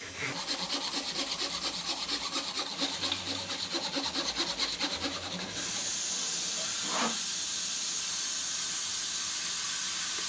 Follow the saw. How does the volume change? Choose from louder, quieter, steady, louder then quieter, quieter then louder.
quieter.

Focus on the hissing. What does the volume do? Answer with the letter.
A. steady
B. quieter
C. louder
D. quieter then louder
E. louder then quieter
C.